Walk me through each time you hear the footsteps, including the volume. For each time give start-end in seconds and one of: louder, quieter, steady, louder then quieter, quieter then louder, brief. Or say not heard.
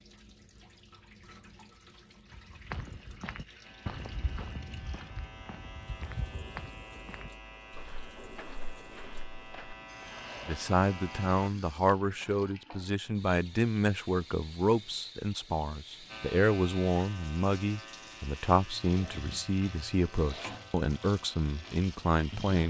2.2-10.7 quieter.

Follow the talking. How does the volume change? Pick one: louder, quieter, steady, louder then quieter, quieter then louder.
steady.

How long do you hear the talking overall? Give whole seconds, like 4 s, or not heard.
12 s.